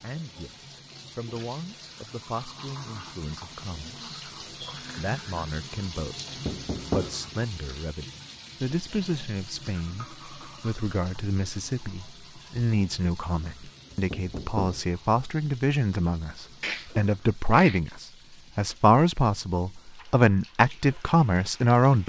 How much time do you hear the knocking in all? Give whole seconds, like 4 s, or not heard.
2 s.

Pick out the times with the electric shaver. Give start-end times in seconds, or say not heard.
not heard.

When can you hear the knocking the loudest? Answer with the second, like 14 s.
7 s.